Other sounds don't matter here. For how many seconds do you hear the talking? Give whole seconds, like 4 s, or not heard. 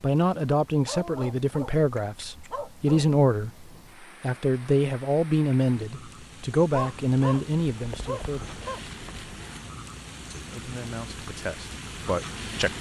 11 s.